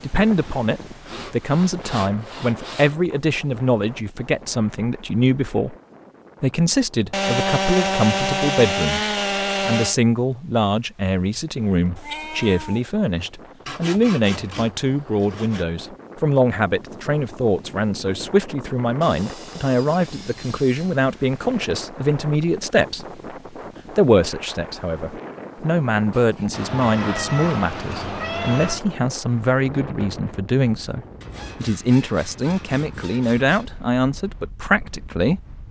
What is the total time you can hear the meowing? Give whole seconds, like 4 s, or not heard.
3 s.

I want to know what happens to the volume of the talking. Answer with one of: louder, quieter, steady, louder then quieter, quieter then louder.
steady.